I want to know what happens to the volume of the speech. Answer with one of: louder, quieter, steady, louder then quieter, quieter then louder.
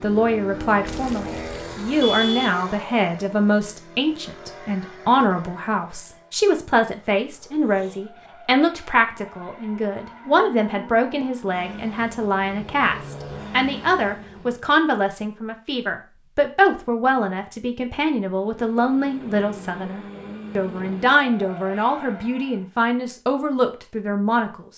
steady.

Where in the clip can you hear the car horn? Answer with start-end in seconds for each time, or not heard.
0.8-2.5.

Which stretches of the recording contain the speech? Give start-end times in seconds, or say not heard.
0.0-24.6.